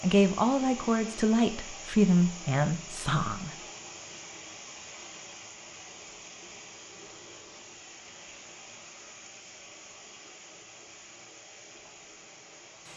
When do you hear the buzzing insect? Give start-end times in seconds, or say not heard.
not heard.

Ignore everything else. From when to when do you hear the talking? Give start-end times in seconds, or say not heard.
0.0-3.5.